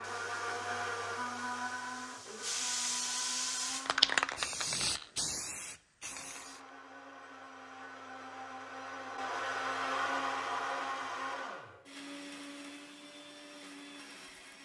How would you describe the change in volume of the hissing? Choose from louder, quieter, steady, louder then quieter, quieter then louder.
louder then quieter.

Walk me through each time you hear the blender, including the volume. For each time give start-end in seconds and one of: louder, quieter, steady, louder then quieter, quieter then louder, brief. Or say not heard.
0.0-4.3 quieter
6.0-14.6 louder then quieter.